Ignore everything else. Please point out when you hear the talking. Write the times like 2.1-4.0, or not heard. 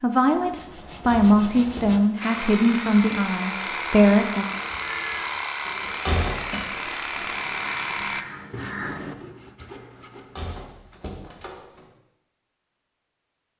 0.0-4.5.